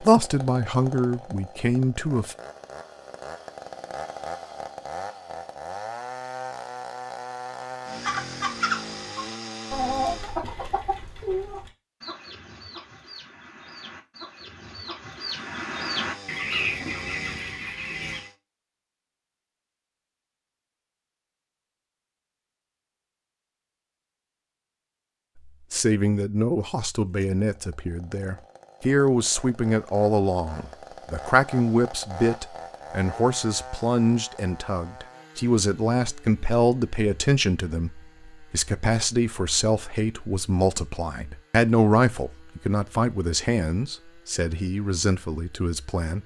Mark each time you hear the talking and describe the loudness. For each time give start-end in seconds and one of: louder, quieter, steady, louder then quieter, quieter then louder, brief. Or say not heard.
0.0-2.4 brief
25.7-46.2 steady.